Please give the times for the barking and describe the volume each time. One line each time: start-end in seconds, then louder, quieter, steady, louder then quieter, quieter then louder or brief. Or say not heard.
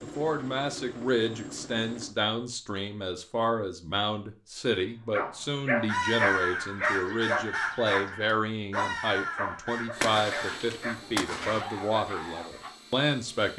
5.1-12.6 quieter.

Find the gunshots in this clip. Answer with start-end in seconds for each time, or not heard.
10.0-11.7.